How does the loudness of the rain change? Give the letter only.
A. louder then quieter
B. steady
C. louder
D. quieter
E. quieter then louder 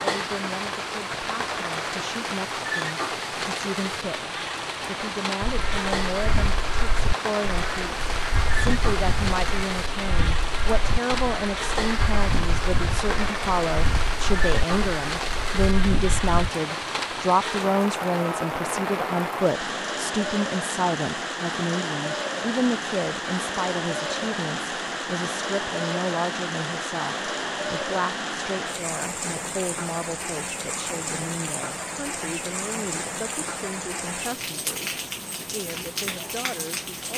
B.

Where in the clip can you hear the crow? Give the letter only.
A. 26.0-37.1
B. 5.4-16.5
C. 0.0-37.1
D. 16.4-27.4
B.